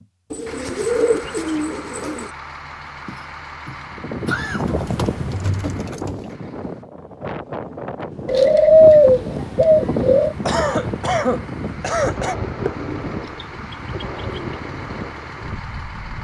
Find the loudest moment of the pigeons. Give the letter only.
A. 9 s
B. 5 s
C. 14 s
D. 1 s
A.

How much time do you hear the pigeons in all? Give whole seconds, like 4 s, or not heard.
8 s.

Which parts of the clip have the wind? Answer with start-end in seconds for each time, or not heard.
3.9-16.1.